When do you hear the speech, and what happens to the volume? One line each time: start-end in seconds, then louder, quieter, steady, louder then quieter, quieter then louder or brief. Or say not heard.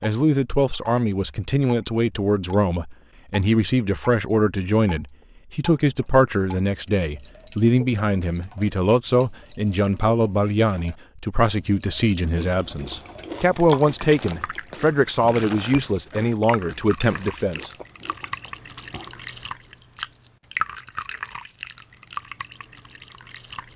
0.0-17.7 steady.